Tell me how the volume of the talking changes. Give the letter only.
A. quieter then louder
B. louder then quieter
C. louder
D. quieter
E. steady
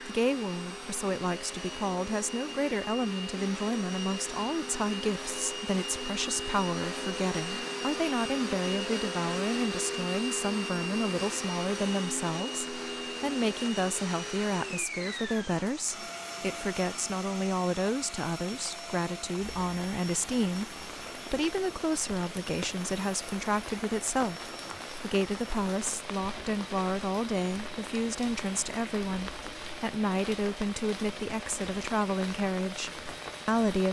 E.